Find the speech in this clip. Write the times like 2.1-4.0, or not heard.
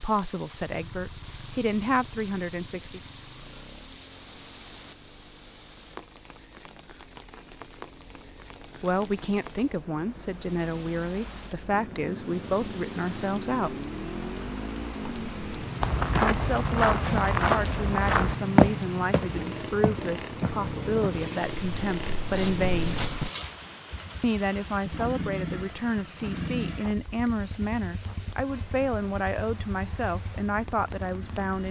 0.0-3.0, 8.8-13.8, 16.2-23.1, 24.2-31.6.